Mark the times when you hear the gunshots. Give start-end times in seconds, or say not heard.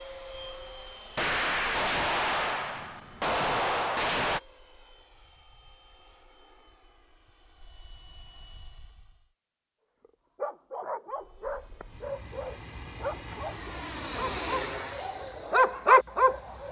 1.1-4.4.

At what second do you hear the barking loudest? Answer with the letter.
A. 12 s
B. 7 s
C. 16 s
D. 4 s
C.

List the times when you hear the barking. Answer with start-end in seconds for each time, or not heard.
10.1-16.6.